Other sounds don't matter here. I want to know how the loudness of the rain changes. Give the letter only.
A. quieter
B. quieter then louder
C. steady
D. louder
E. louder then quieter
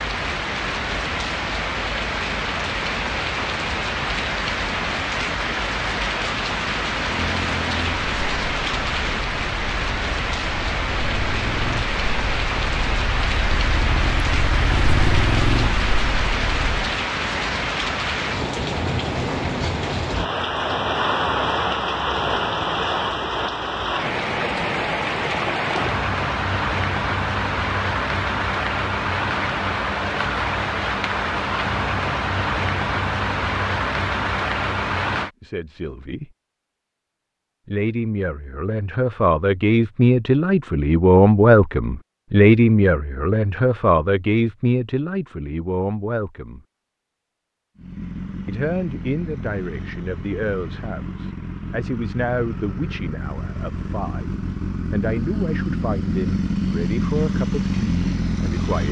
C.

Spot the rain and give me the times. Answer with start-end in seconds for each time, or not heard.
0.0-35.3.